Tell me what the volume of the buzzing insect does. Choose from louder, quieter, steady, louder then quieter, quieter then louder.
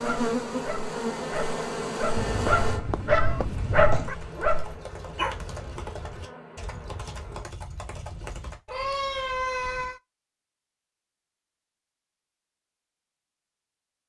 quieter.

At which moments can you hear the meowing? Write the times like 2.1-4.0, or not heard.
2.1-4.2, 8.7-10.0.